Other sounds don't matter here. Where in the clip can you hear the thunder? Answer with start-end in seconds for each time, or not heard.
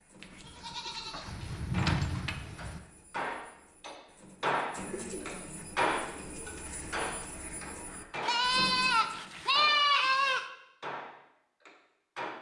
1.2-2.8.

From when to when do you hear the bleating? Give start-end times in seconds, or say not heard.
0.2-2.5, 8.2-10.4.